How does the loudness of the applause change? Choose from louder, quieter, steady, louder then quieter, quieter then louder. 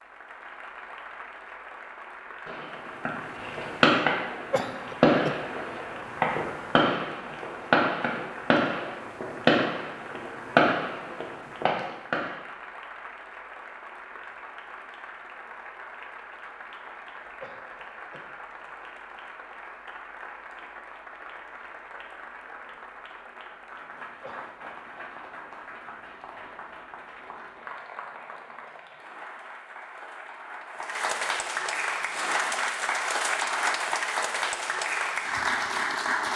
louder.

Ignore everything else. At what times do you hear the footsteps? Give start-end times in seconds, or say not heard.
not heard.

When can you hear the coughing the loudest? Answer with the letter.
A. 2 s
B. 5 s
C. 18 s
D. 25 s
B.